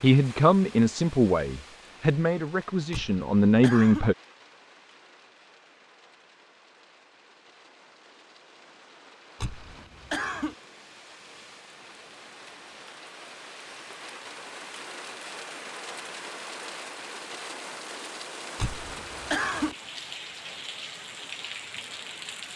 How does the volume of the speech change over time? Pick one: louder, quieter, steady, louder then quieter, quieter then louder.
quieter then louder.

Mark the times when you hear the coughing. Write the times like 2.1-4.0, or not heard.
2.9-4.1, 9.4-10.6, 18.6-19.8.